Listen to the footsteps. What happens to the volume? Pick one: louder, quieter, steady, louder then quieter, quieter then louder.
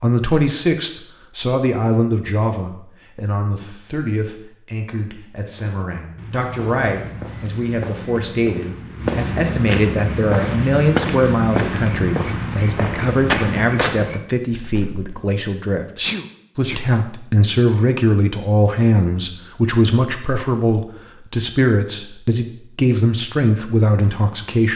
louder.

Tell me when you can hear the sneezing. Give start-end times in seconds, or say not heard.
15.9-16.8.